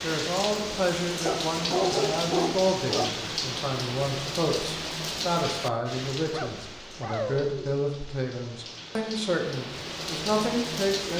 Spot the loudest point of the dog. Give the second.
2 s.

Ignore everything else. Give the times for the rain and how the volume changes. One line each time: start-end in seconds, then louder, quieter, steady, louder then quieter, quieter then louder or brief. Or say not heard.
0.0-11.1 quieter then louder.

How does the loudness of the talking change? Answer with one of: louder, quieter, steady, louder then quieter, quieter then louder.
steady.